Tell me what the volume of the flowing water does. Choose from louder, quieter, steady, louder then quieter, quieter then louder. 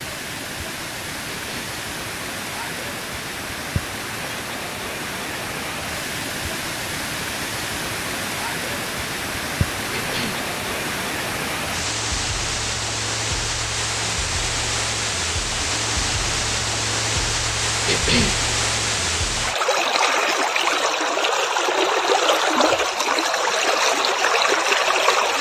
louder.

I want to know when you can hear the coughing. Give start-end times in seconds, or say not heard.
1.4-1.8, 9.9-10.4, 17.9-18.4.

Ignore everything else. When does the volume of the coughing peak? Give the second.
18 s.